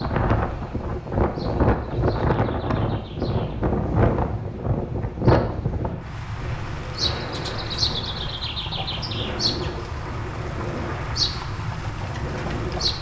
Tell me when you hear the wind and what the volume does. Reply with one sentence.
The wind can be heard from 0.0 to 12.9 s, getting quieter.